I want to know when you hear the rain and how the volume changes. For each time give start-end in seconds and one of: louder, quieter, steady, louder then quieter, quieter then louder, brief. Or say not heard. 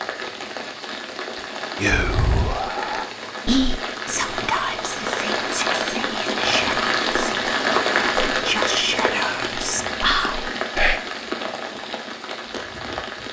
0.0-13.2 louder then quieter.